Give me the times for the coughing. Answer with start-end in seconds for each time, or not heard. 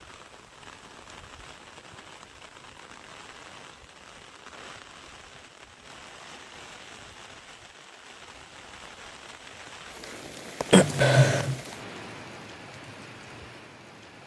10.7-11.6.